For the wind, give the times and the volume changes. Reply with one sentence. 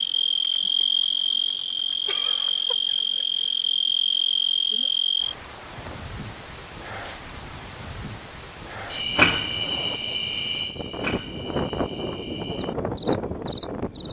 You can hear the wind from 5.2 to 14.0 s, getting louder.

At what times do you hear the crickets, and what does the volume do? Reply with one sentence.
You can hear the crickets from 0.0 to 14.0 s, getting quieter.